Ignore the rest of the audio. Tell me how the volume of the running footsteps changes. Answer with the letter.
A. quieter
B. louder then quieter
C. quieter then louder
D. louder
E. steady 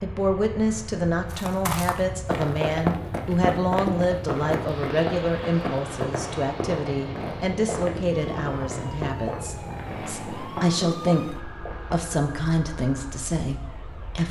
A.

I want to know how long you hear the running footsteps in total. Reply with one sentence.
You can hear the running footsteps for 11 seconds altogether.